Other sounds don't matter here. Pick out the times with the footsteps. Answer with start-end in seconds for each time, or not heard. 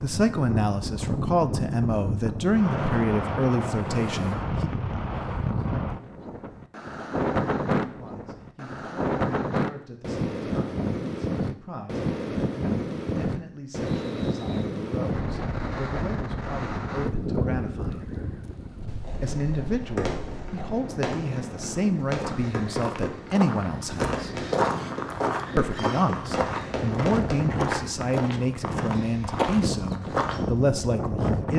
21.8-30.4.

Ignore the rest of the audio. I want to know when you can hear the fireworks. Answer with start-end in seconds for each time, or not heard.
19.0-27.4.